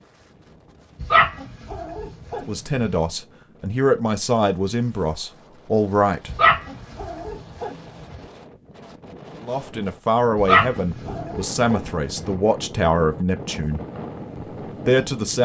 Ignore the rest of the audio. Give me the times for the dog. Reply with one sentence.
The dog can be heard from 1.0 to 2.9 s, from 6.3 to 7.8 s and from 10.3 to 11.8 s.